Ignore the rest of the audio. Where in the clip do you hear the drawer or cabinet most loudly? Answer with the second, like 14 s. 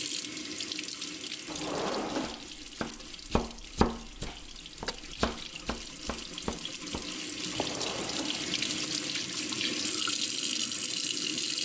2 s.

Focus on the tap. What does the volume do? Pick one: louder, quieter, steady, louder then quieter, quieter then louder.
quieter then louder.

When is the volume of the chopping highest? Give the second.
4 s.